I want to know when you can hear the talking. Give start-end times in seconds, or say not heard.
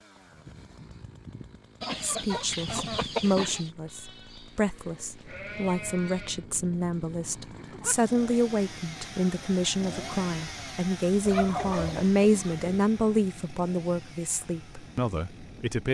2.0-15.8.